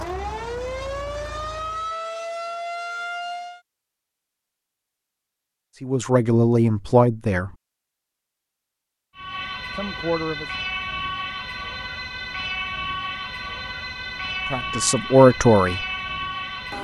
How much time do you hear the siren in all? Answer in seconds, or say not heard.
11 s.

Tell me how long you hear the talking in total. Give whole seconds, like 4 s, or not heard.
4 s.